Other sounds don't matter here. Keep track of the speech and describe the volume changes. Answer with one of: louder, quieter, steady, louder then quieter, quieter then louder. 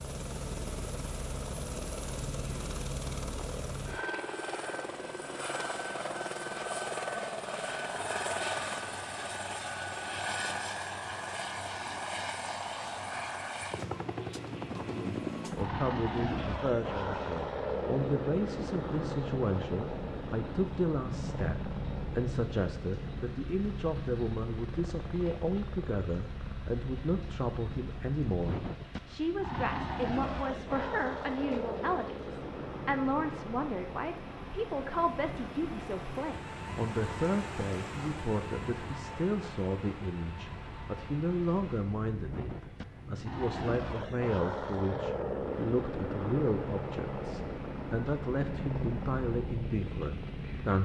steady.